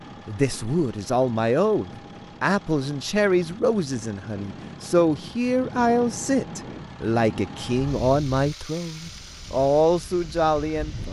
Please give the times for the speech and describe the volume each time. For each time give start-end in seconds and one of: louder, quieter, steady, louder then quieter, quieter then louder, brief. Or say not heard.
0.2-11.0 steady.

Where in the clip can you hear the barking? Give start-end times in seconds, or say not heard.
not heard.